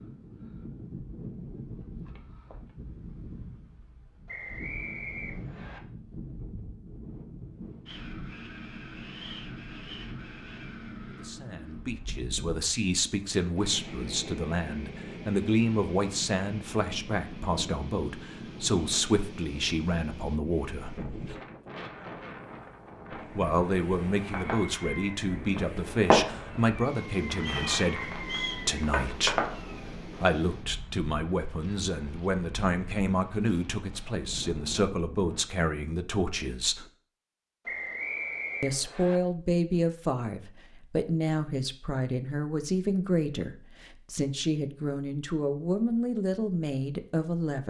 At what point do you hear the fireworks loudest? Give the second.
26 s.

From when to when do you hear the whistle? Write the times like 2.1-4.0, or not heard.
4.2-5.8, 27.4-28.6, 37.6-39.2.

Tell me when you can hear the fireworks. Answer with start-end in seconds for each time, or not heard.
24.1-29.9.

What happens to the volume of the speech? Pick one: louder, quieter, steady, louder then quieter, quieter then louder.
steady.